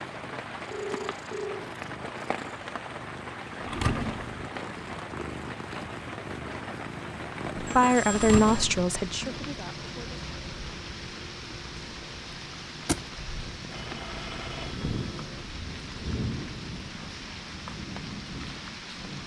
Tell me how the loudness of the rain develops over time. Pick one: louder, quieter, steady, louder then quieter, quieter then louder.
steady.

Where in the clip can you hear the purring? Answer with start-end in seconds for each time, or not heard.
0.0-15.4.